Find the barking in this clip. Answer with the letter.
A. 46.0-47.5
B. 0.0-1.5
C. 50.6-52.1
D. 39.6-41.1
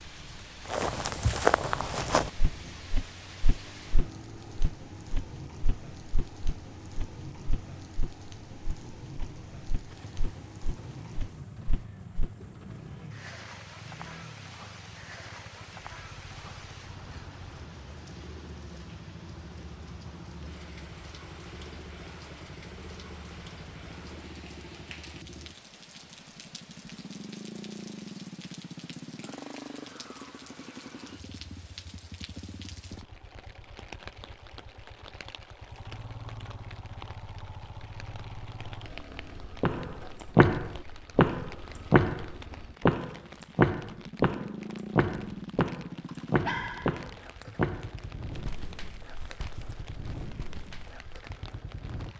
A.